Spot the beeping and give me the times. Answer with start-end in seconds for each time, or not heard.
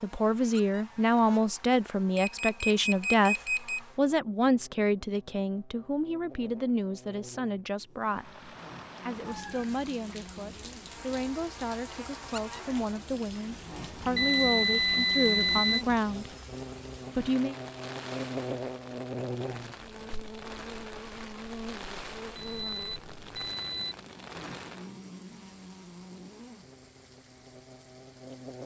2.1-3.8, 14.2-15.8, 22.4-23.9.